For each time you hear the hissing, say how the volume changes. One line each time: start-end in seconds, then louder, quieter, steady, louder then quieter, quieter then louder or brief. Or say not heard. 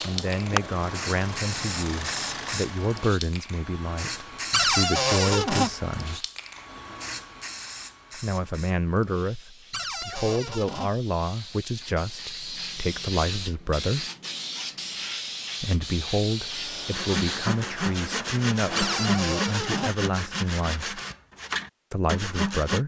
0.0-17.5 quieter then louder.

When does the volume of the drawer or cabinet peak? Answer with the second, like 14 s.
5 s.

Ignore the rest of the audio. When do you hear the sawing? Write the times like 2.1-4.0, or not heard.
16.9-22.8.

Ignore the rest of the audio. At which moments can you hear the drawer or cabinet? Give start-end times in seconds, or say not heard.
4.5-5.7, 9.7-10.9, 18.8-19.9.